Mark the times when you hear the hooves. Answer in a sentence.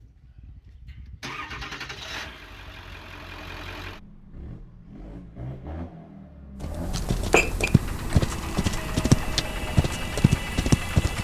You can hear the hooves from 6.6 to 11.1 s.